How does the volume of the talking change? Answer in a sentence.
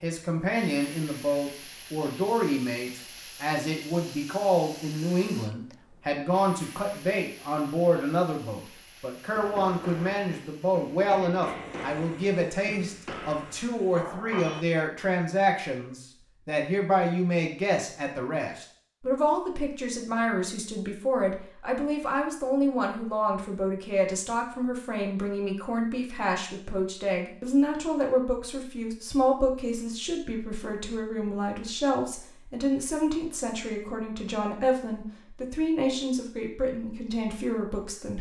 The loudness of the talking stays about the same.